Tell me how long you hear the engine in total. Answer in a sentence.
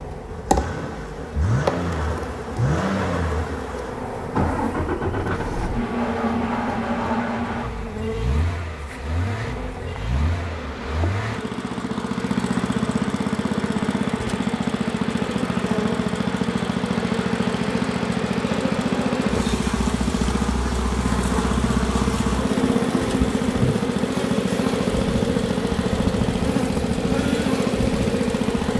You can hear the engine for 29 seconds altogether.